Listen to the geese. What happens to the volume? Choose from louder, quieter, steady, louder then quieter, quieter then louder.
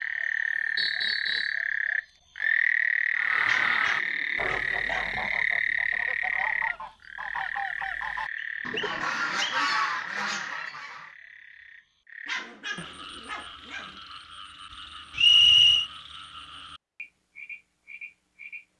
quieter then louder.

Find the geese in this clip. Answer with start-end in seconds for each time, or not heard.
3.1-11.2.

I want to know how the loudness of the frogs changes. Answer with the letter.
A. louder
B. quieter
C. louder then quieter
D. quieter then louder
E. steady
B.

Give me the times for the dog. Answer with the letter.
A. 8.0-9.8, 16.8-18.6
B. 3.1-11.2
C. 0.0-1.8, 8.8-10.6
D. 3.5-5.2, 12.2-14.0
D.